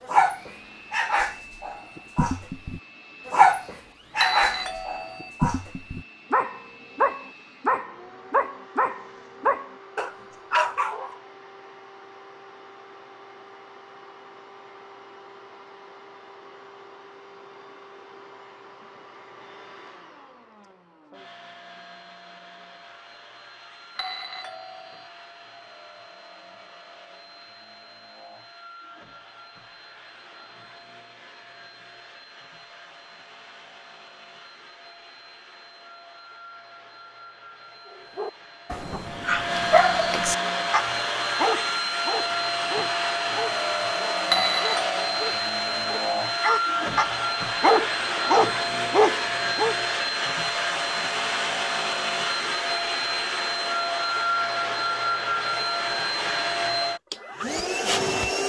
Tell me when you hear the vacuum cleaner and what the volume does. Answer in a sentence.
The vacuum cleaner can be heard from 0.0 to 58.4 s, getting louder.